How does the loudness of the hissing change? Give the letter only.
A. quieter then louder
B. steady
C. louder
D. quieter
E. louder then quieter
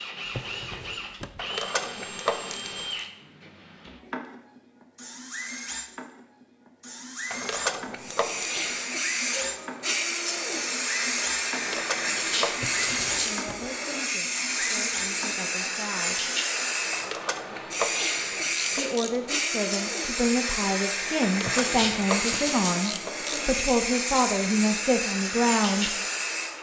B.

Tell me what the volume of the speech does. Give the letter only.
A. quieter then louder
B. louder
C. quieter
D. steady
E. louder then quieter
B.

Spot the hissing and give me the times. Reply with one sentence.
The hissing can be heard from 8.0 to 26.5 s.